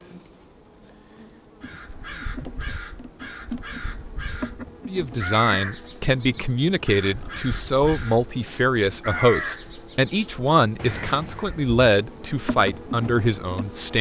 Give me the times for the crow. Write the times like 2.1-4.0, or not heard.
1.6-11.6.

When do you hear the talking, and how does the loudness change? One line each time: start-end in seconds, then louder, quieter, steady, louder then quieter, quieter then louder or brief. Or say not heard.
4.8-13.9 steady.